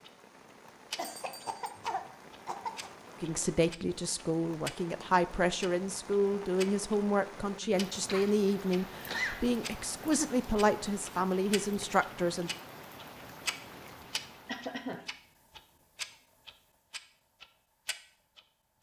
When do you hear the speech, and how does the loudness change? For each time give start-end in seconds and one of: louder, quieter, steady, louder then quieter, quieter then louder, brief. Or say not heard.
3.2-12.5 steady.